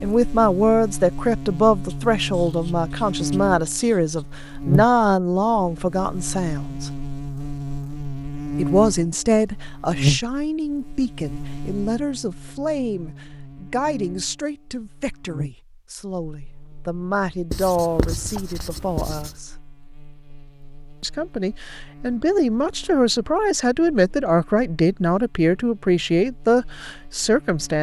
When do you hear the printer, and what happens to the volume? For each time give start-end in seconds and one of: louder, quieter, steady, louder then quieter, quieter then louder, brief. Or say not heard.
not heard.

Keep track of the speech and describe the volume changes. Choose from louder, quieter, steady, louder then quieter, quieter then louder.
quieter then louder.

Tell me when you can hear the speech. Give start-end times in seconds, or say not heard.
0.0-6.9, 8.6-19.5, 21.0-27.7.